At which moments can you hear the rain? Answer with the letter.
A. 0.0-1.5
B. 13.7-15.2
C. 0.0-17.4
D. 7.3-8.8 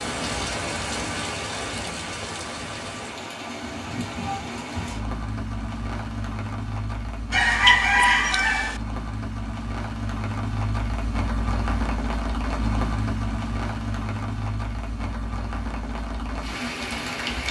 C.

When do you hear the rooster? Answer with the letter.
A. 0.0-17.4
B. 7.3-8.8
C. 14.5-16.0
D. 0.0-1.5
B.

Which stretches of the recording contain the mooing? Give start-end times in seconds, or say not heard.
not heard.